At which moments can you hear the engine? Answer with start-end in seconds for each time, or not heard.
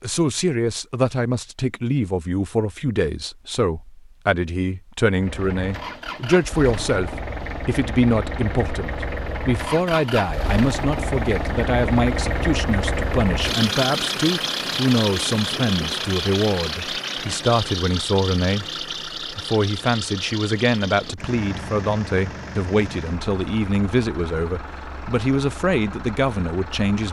5.1-27.0.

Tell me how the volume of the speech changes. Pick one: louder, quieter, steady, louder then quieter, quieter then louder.
steady.